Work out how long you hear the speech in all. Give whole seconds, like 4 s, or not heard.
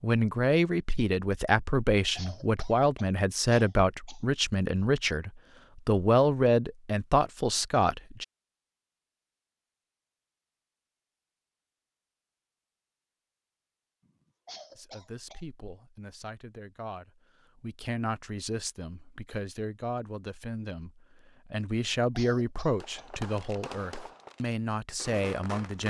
19 s.